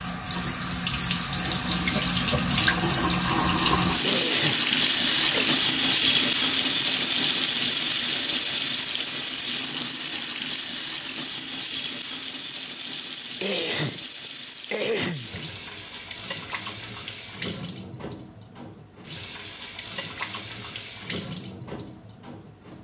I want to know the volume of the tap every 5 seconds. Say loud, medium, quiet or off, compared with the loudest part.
loud, loud, medium, quiet, quiet.